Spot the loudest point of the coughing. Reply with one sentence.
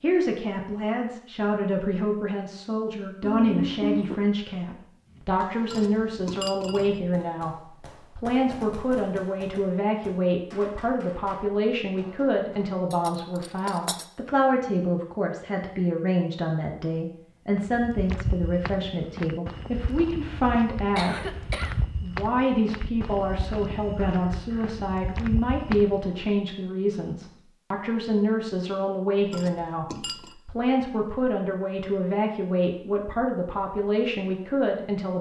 The volume of the coughing peaks at 4 seconds.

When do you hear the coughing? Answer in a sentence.
You can hear the coughing from 3.2 to 4.2 s, from 20.9 to 21.9 s and from 24.0 to 24.8 s.